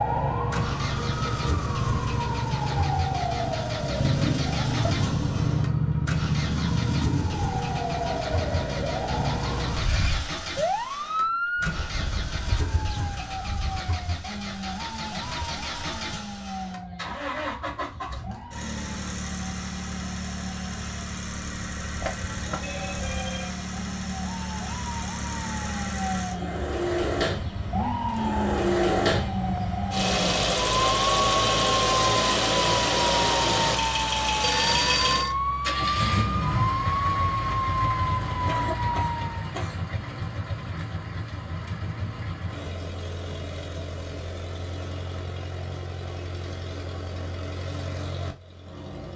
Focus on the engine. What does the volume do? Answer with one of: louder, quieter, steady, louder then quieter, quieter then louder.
louder then quieter.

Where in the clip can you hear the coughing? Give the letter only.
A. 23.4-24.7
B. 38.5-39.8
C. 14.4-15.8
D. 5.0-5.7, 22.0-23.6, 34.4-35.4
B.